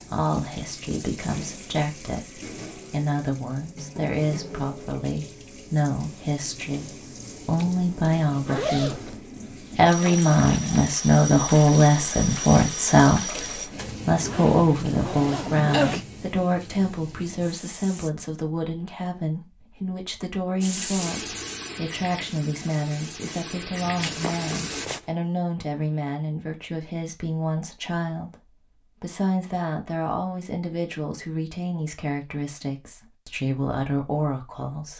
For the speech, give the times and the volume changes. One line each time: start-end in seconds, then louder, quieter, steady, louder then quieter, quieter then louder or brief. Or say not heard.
0.0-34.9 louder then quieter.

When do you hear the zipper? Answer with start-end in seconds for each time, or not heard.
7.5-9.2, 13.8-16.1, 24.0-25.1.